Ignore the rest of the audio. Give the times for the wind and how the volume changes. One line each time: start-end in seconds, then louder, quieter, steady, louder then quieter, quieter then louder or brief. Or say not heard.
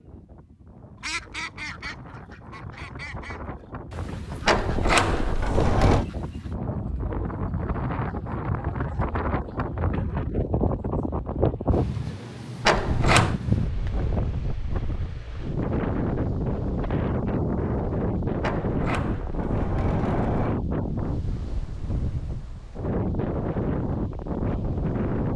0.0-25.3 louder.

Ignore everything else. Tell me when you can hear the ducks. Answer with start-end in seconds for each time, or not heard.
1.0-6.5.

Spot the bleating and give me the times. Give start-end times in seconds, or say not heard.
not heard.